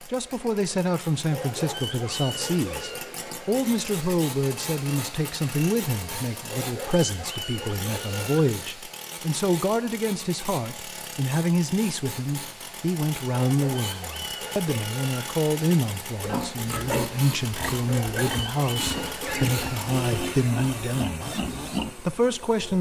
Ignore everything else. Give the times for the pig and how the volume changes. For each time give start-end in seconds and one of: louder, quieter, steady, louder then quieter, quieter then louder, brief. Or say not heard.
16.2-21.9 steady.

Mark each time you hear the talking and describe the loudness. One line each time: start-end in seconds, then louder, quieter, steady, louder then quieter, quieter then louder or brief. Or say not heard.
0.0-22.7 steady.